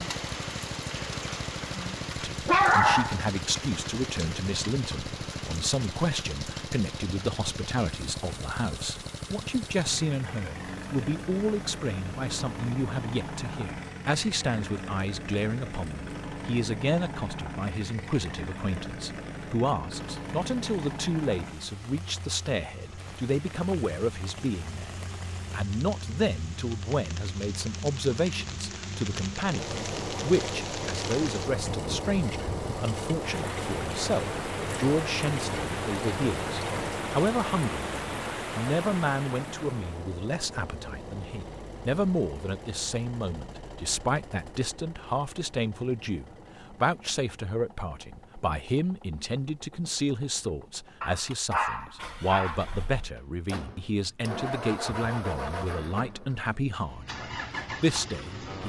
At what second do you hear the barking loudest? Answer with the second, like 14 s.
3 s.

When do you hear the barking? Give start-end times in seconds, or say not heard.
2.5-3.2, 51.0-52.6.